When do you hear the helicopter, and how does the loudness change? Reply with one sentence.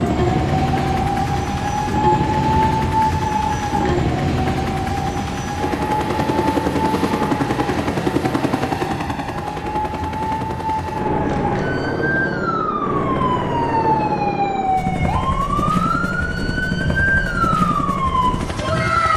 You can hear the helicopter from 0.0 to 19.1 s, at a steady volume.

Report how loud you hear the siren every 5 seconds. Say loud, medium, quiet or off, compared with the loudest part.
loud, medium, loud, loud.